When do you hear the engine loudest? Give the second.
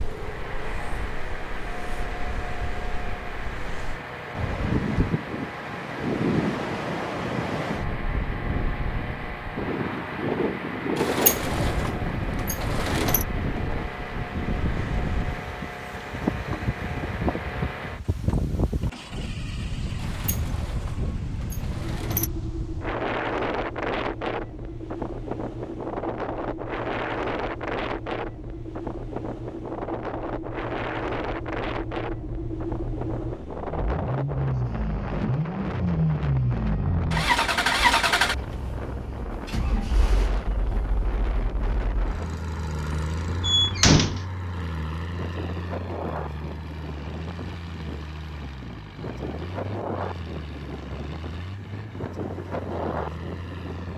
38 s.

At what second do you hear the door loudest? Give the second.
44 s.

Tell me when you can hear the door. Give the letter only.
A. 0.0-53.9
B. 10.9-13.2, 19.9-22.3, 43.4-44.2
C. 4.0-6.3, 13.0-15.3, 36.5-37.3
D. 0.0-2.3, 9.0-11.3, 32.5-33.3
B.